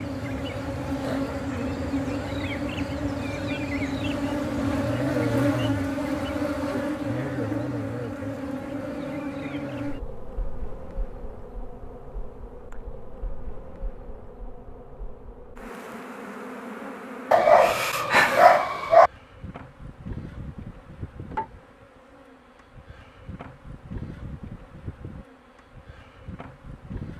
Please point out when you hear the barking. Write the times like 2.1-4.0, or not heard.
17.3-19.1.